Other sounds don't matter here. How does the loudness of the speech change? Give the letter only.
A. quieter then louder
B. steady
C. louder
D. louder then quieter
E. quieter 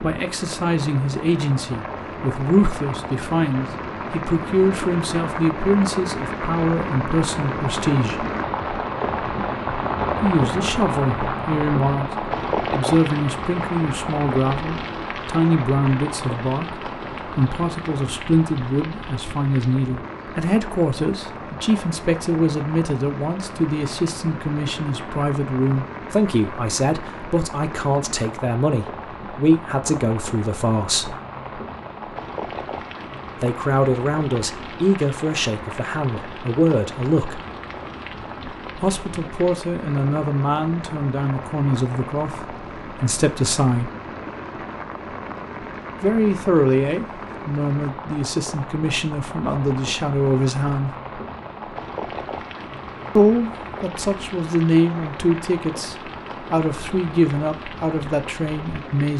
B.